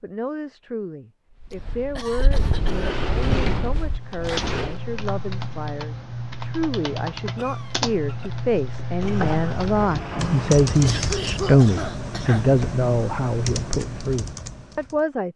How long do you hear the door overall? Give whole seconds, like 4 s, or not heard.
4 s.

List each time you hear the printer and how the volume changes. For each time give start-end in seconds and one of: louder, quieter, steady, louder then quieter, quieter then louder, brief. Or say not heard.
not heard.